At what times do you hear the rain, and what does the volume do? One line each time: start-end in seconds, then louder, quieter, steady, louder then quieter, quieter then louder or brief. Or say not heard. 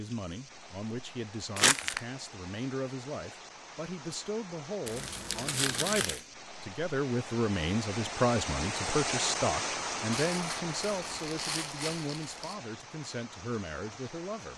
0.0-14.5 louder then quieter.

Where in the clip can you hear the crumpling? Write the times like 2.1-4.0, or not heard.
1.6-2.0, 4.8-6.2, 10.1-12.6.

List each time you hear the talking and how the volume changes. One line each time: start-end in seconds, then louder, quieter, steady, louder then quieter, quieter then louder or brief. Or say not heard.
0.0-14.5 louder then quieter.